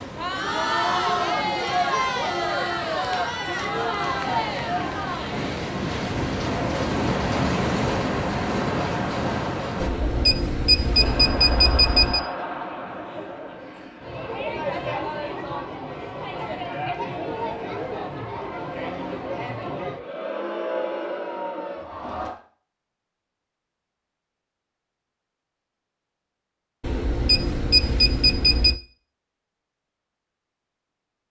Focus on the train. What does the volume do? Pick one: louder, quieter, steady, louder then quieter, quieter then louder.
louder.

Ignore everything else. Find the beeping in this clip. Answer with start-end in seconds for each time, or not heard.
9.8-12.2, 26.8-28.8.